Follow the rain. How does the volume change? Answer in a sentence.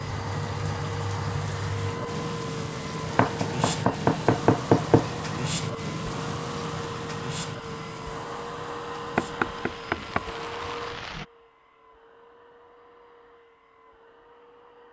The loudness of the rain goes down.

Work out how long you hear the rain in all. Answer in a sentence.
You can hear the rain for 11 seconds altogether.